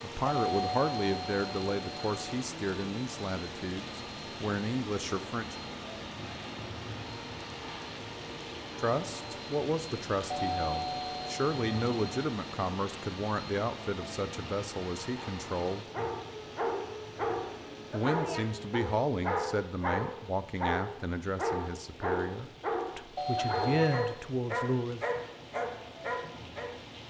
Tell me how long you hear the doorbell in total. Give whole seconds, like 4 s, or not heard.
5 s.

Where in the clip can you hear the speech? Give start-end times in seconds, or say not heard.
0.0-5.5, 8.8-15.8, 17.9-25.2.